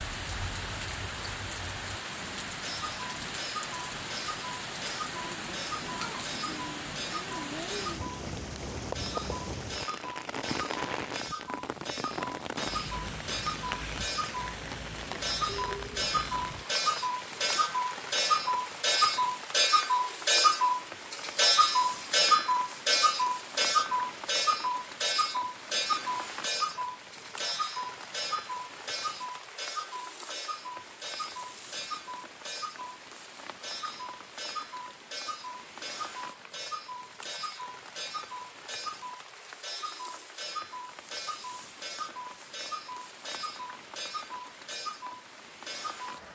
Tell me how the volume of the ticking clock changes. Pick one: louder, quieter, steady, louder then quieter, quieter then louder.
louder then quieter.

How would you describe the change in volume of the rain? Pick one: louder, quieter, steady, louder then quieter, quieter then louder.
quieter.